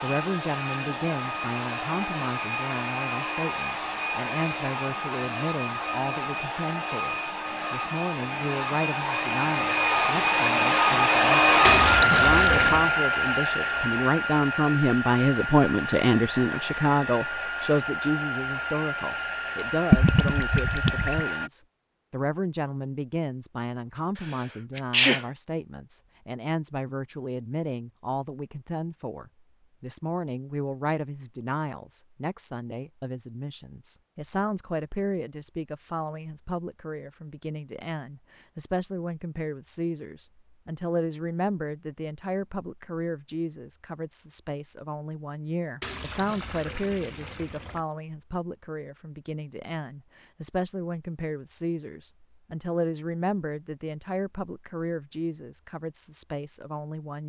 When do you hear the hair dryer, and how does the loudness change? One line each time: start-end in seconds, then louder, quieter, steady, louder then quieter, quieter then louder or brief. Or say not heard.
0.0-21.5 louder then quieter.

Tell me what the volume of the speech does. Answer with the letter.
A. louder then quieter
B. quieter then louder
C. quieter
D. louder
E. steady
A.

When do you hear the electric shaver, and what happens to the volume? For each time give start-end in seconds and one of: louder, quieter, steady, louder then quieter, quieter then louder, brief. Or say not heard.
not heard.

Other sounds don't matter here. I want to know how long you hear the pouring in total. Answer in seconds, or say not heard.
5 s.